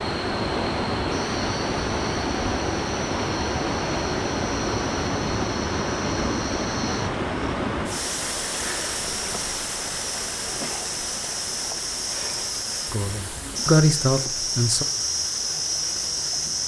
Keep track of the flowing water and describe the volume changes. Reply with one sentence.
The volume of the flowing water goes down.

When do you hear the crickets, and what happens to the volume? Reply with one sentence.
The crickets can be heard from 0.0 to 16.6 s, getting louder.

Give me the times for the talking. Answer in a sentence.
The talking can be heard from 12.9 to 14.8 s.